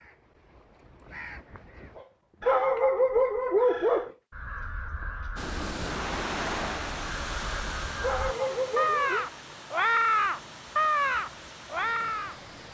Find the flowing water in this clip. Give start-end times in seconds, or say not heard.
5.3-12.6.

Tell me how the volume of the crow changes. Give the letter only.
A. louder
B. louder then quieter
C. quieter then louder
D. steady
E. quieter
A.